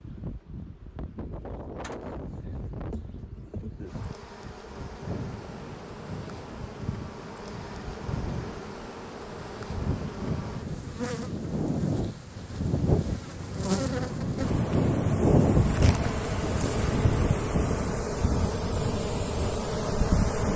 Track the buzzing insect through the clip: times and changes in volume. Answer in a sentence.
You can hear the buzzing insect from 0.0 to 20.5 s, getting louder.